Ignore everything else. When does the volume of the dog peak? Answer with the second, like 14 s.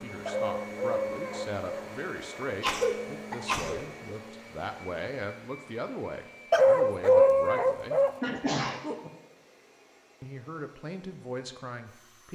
7 s.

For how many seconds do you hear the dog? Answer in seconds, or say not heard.
3 s.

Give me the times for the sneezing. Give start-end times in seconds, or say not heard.
2.4-3.8, 8.2-9.1.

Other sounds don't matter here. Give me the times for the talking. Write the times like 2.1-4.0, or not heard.
0.0-8.0, 10.2-12.3.